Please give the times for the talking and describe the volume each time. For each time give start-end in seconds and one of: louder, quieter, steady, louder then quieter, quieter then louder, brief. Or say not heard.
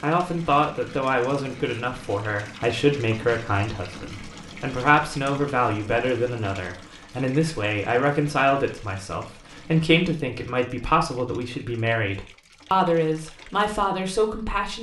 0.0-14.7 steady.